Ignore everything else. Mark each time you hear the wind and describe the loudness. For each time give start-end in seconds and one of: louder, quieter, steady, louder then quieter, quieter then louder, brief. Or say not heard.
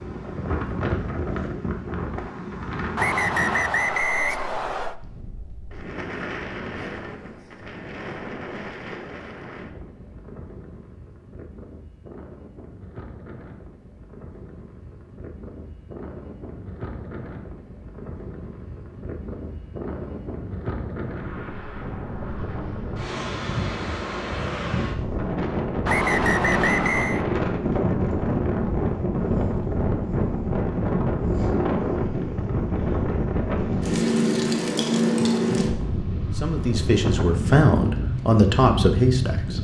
0.0-39.5 quieter then louder.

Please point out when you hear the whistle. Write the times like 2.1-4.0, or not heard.
3.0-5.0, 25.9-27.2.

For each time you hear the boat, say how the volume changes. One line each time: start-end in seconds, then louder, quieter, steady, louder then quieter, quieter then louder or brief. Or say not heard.
not heard.